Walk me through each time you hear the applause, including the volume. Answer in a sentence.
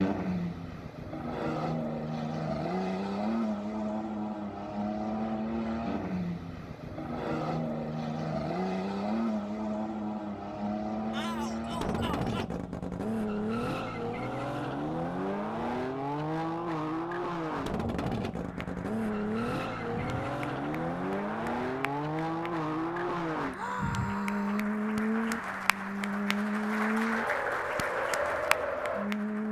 You can hear the applause from 18.3 to 29.4 s, getting louder.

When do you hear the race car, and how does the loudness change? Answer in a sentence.
You can hear the race car from 0.0 to 29.4 s, at a steady volume.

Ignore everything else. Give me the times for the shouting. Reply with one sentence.
You can hear the shouting from 11.1 to 12.4 s and from 23.5 to 24.7 s.